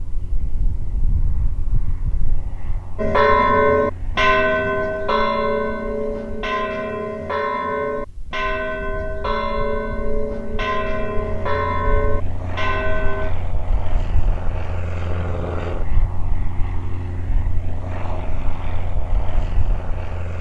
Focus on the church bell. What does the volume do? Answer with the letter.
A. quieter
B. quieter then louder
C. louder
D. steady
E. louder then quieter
A.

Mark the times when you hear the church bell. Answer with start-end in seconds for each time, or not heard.
3.0-13.3.